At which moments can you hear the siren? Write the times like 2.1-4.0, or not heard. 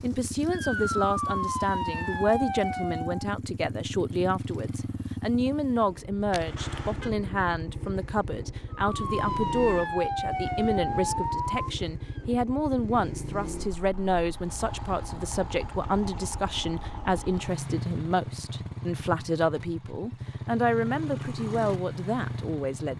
0.0-3.3, 8.8-12.2.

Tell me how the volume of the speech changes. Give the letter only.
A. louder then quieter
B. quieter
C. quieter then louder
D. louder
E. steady
E.